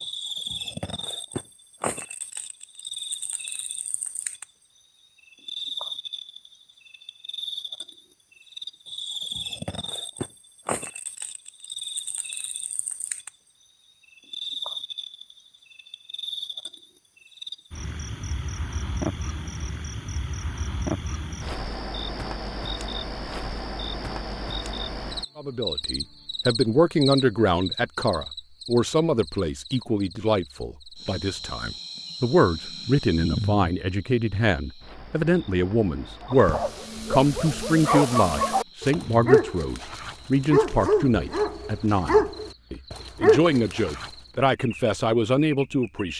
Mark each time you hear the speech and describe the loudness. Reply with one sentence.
You can hear the speech from 25.4 to 46.1 s, at a steady volume.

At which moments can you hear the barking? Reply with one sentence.
The barking can be heard from 36.3 to 44.1 s.